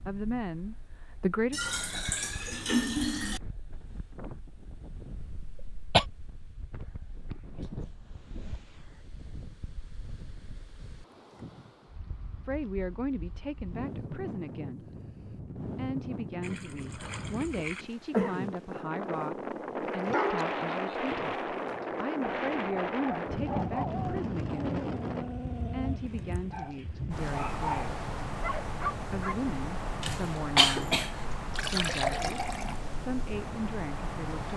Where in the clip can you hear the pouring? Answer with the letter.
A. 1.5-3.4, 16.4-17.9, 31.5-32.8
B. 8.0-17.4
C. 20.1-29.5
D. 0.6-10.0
A.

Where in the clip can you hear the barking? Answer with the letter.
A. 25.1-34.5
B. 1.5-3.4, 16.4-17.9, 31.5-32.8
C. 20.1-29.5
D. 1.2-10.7
C.